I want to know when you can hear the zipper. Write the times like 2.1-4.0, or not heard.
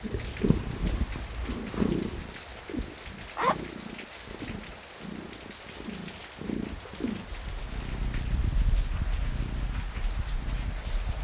3.4-3.9.